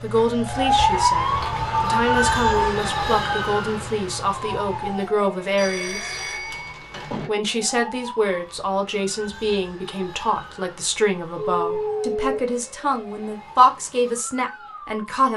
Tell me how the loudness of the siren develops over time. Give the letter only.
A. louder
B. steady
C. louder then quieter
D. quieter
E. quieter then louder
D.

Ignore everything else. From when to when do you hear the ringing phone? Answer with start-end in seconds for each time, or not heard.
1.4-2.7, 5.5-7.3, 11.3-12.4.